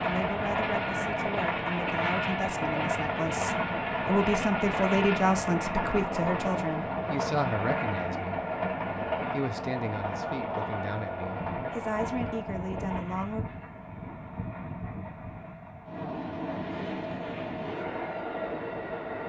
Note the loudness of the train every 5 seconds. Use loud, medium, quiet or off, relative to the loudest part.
loud, loud, medium, medium.